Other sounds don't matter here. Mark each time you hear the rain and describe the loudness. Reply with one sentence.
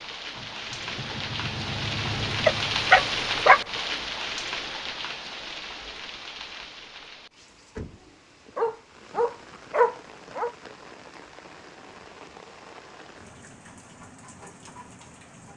You can hear the rain from 0.0 to 15.5 s, getting quieter.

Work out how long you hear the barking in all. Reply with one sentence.
You can hear the barking for 3 seconds altogether.